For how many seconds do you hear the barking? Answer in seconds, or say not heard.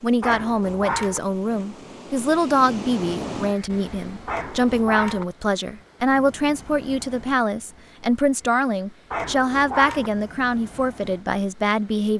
3 s.